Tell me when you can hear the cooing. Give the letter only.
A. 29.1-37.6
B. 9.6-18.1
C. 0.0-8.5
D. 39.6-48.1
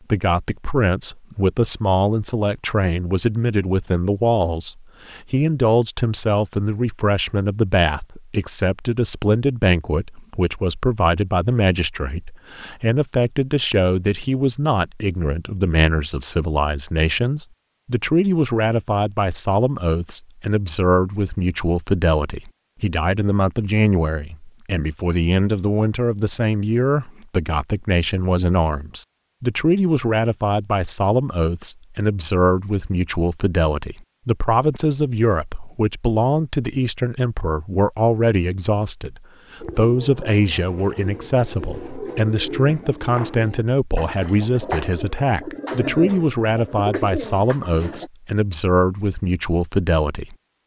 D.